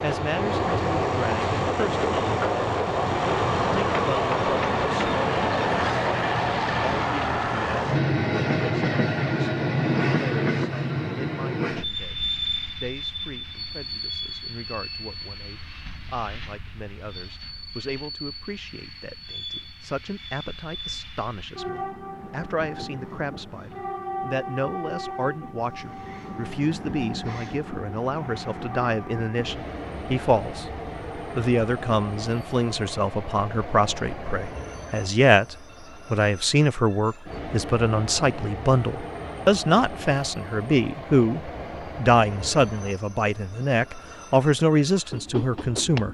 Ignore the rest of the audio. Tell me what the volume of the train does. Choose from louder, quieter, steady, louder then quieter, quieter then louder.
quieter.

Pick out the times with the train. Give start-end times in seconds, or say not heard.
0.0-46.0.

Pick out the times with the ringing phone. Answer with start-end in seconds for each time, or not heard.
not heard.